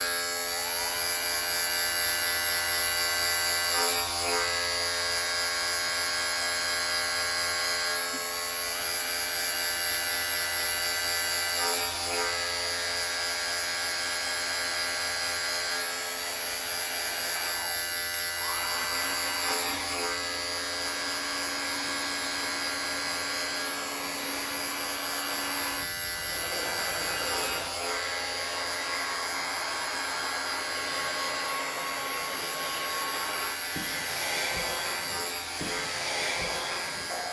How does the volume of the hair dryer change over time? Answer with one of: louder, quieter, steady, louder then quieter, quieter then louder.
louder.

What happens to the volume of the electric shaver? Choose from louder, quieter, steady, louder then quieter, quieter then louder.
quieter.